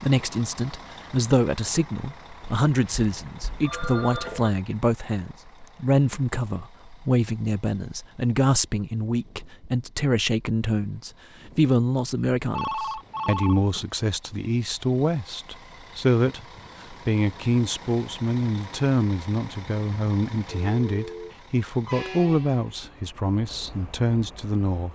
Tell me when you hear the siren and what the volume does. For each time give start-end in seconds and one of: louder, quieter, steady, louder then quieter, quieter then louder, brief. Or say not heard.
not heard.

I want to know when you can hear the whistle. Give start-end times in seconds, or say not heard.
not heard.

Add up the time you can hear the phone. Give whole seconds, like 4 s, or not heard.
4 s.